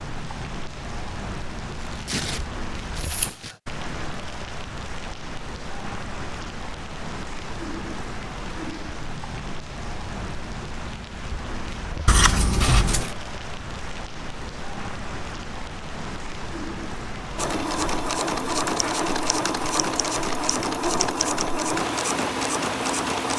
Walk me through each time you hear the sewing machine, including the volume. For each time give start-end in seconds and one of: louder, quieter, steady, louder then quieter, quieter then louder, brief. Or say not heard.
17.4-23.3 steady.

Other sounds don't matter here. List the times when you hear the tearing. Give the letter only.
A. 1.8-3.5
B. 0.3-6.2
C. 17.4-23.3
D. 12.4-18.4
A.